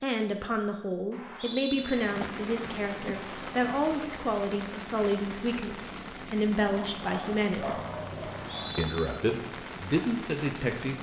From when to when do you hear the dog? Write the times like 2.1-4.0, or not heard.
6.7-8.8.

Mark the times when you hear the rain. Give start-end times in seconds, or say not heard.
1.7-10.9.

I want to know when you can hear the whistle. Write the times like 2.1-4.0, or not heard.
1.1-1.9, 8.2-8.9.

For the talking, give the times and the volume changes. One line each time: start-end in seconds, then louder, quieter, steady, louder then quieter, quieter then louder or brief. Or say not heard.
0.0-7.8 steady
8.8-10.9 brief.